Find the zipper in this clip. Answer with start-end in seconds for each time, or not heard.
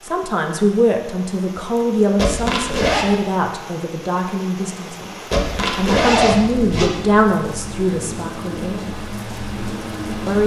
2.1-3.0, 5.3-6.9.